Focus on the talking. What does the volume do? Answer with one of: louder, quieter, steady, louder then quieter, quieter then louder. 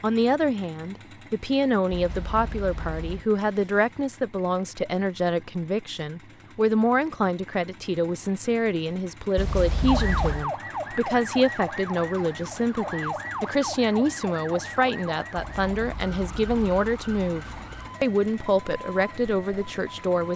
steady.